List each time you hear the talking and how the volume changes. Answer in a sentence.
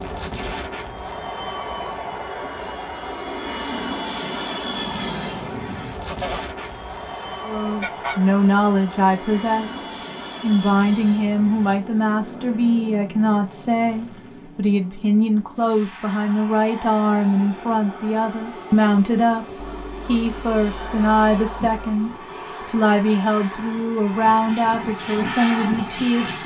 You can hear the talking from 7.5 to 26.4 s, at a steady volume.